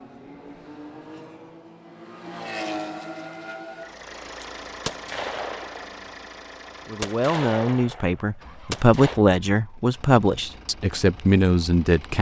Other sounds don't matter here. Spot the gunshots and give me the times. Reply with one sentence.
You can hear the gunshots from 4.4 to 6.0 s and from 7.0 to 9.2 s.